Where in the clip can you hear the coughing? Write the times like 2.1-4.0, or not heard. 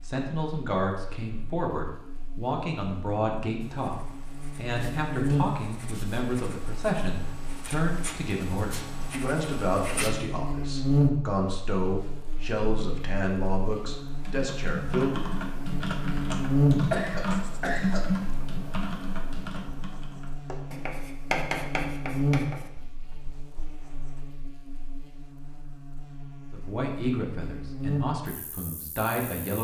16.9-18.3.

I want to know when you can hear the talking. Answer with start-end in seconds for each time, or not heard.
0.1-15.3, 26.5-29.5.